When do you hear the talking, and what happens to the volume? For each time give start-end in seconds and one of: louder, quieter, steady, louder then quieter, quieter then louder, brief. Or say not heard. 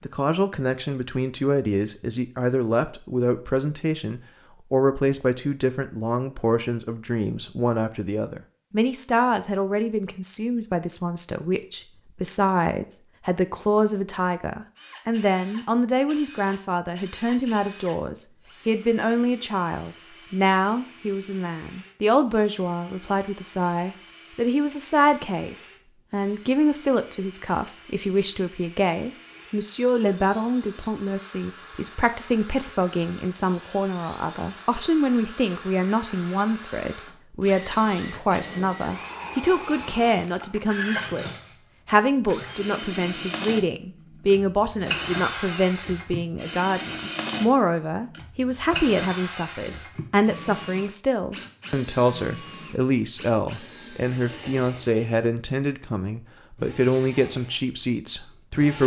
0.0-58.8 steady.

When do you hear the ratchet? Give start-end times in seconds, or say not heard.
not heard.